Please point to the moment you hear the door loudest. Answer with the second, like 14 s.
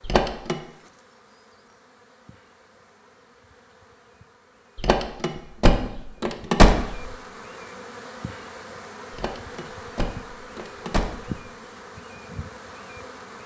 7 s.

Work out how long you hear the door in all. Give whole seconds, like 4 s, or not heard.
5 s.